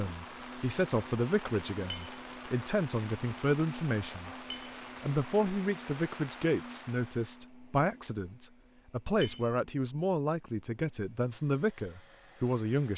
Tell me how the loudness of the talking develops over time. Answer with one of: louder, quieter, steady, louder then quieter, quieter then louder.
steady.